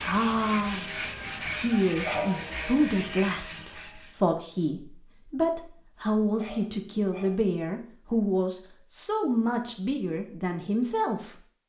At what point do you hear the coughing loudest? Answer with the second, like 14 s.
2 s.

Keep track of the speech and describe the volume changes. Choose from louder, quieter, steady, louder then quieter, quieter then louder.
steady.